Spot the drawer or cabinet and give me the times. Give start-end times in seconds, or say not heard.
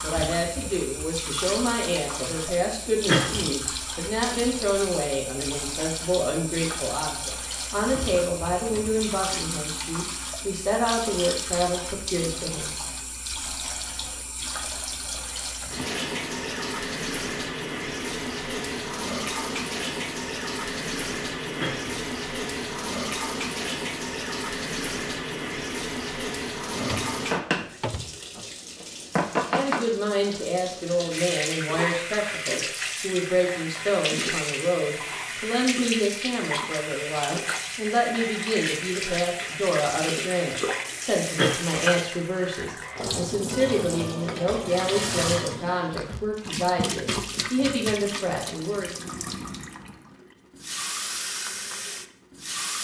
8.5-9.2, 26.6-28.2.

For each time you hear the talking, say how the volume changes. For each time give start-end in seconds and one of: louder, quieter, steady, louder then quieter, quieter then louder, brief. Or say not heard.
0.0-12.7 steady
29.4-48.9 steady.